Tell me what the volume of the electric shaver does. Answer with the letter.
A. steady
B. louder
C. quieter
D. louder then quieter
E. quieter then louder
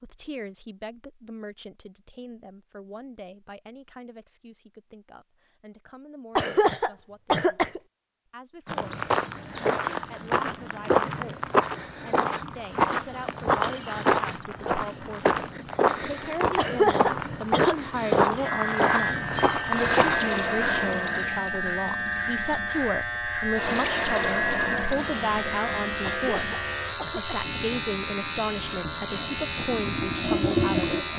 A.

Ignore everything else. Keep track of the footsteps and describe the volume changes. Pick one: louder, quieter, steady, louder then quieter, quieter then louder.
steady.